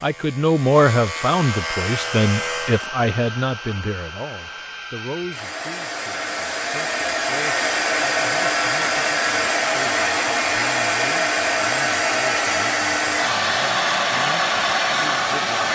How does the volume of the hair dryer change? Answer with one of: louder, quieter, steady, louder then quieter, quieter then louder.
louder.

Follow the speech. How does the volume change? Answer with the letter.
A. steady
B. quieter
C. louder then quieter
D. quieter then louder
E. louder
B.